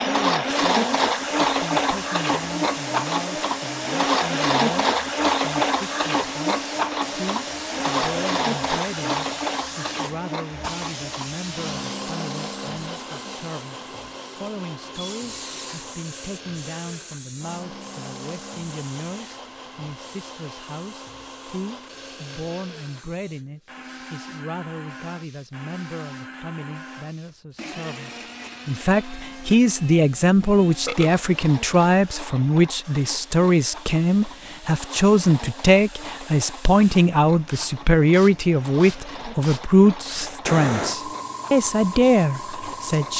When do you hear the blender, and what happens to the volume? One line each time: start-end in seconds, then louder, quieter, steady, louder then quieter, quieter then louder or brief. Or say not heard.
0.0-43.1 quieter.